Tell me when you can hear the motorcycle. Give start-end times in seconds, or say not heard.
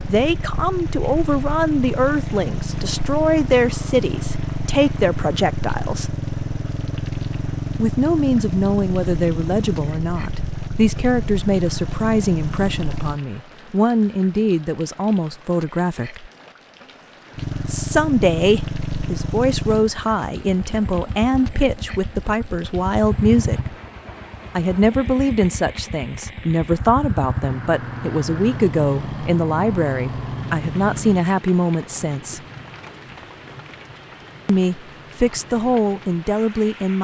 0.0-13.2, 17.4-31.2.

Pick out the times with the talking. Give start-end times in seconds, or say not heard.
0.0-6.2, 7.8-16.3, 17.6-23.8, 24.6-32.4, 34.5-36.9.